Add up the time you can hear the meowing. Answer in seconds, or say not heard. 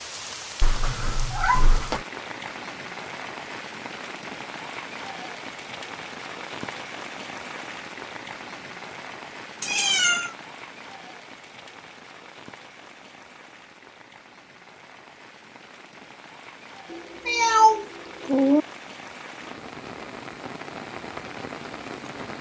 4 s.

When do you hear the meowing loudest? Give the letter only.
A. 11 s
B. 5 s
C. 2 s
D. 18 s
D.